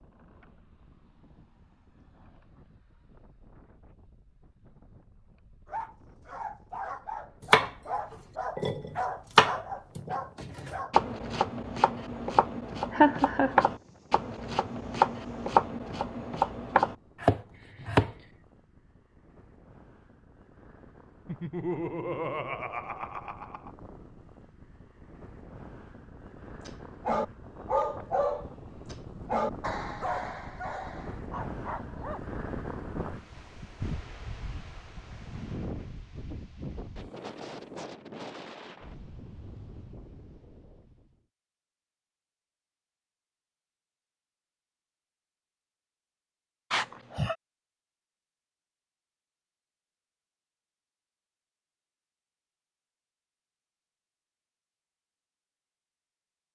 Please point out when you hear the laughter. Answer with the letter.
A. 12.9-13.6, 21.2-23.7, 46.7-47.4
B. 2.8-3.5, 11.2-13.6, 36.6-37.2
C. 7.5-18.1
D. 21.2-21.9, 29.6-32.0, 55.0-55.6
A.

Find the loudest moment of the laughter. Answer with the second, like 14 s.
13 s.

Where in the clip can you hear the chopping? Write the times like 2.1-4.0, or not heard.
7.5-18.1.